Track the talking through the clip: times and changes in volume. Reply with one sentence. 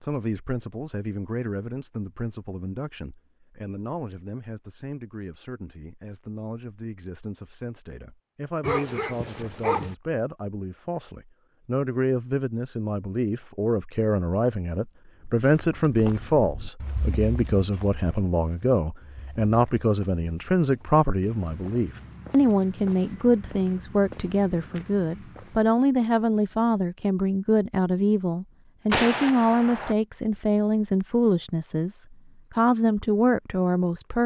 The talking can be heard from 0.0 to 34.2 s, getting louder.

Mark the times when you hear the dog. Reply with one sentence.
You can hear the dog from 8.6 to 9.9 s.